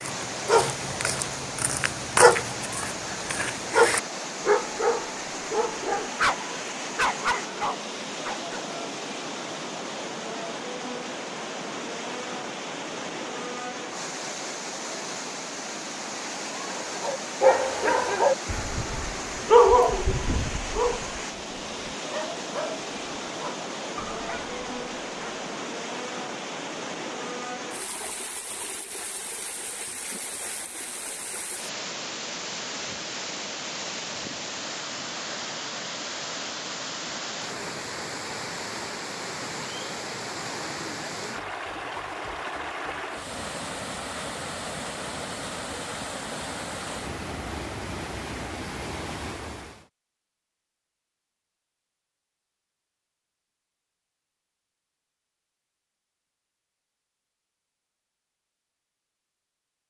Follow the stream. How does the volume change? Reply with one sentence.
The loudness of the stream stays about the same.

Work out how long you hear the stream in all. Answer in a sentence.
You can hear the stream for 50 seconds altogether.